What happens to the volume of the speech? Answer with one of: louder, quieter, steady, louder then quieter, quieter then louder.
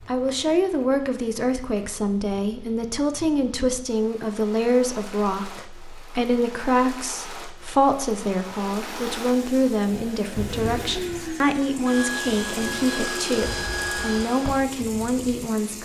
steady.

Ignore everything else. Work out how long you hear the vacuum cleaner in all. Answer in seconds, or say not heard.
6 s.